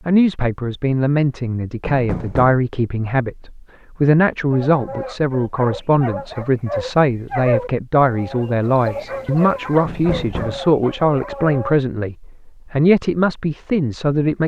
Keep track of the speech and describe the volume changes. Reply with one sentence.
The loudness of the speech stays about the same.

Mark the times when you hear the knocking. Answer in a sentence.
You can hear the knocking from 1.8 to 2.6 s and from 9.8 to 10.6 s.